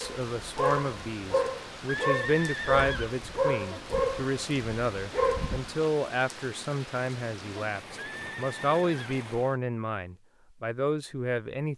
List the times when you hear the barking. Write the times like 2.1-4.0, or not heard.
0.0-5.7.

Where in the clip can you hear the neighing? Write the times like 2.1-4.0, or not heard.
1.9-3.1, 8.0-9.2.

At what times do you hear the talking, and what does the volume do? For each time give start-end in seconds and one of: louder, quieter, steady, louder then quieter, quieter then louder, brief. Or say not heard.
0.0-11.7 steady.